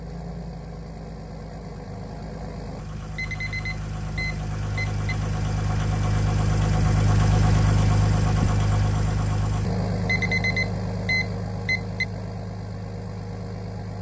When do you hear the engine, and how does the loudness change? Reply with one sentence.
You can hear the engine from 0.0 to 13.9 s, getting louder then quieter.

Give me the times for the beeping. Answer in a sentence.
The beeping can be heard from 3.1 to 5.2 s and from 10.1 to 12.1 s.